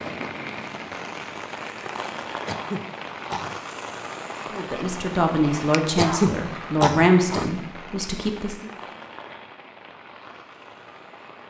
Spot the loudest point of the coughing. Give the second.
6 s.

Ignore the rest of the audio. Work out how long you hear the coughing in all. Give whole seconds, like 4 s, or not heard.
3 s.